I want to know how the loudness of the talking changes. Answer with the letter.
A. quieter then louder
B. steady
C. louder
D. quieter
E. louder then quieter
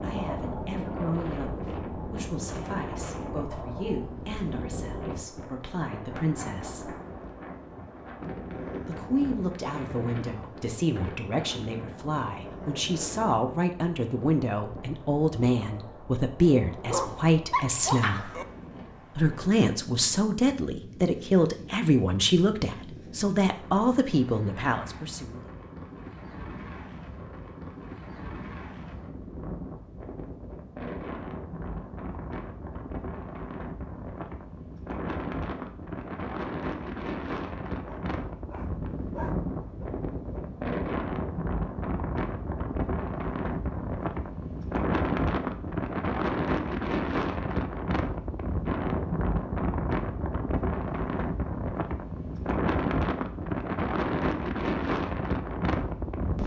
C.